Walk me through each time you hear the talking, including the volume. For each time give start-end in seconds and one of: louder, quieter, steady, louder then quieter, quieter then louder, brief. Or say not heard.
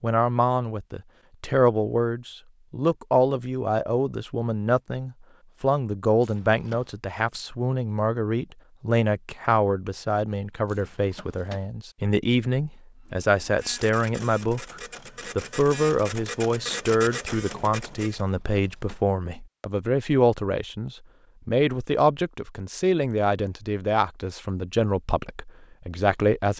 0.0-26.5 steady.